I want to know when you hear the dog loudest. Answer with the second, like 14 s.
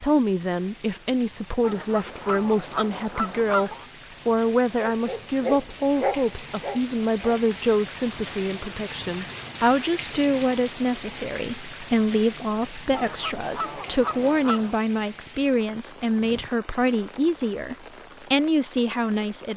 6 s.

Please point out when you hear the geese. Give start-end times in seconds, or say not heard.
1.6-3.9, 12.9-14.8.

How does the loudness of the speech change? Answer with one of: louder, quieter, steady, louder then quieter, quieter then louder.
steady.